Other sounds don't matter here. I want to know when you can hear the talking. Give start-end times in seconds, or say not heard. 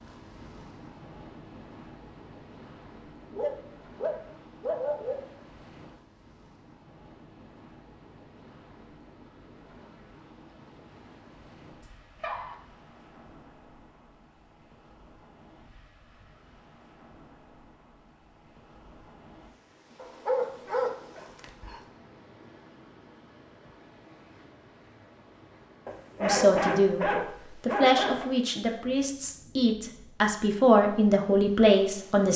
26.2-32.3.